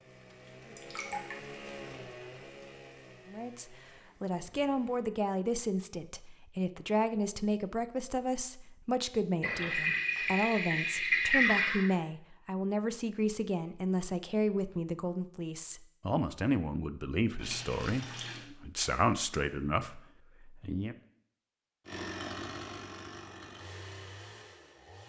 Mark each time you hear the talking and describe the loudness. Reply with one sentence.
You can hear the talking from 3.2 to 20.9 s, at a steady volume.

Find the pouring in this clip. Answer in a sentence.
The pouring can be heard from 0.8 to 1.4 s, from 9.4 to 11.9 s and from 17.4 to 18.4 s.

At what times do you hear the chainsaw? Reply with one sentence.
The chainsaw can be heard from 0.0 to 5.1 s and from 21.9 to 25.0 s.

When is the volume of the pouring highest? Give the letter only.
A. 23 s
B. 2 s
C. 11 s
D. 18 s
C.